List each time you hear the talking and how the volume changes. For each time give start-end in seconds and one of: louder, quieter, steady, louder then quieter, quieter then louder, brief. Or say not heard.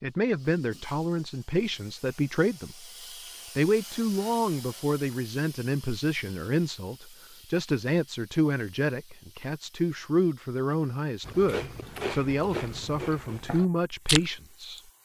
0.0-2.9 brief
3.5-14.8 steady.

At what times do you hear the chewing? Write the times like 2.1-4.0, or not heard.
11.2-14.8.